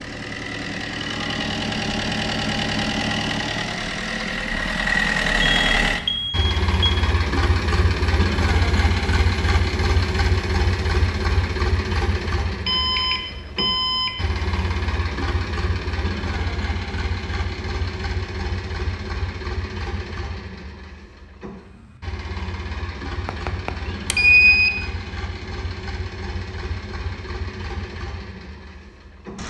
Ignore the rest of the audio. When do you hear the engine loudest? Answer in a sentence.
The volume of the engine peaks at 5 seconds.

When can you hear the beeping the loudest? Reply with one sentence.
The volume of the beeping peaks at 24 seconds.